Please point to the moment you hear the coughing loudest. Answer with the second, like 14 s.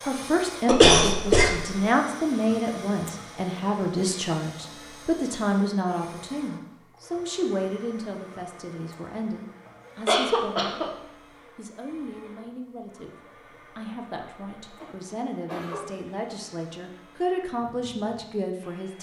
1 s.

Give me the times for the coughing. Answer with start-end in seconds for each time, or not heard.
0.7-1.5, 10.1-10.9, 14.8-15.9.